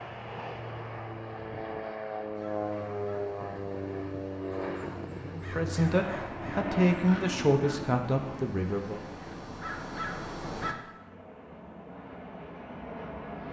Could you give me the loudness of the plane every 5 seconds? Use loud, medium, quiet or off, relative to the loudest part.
loud, loud, medium.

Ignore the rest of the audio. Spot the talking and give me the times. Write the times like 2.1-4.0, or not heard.
5.3-9.0.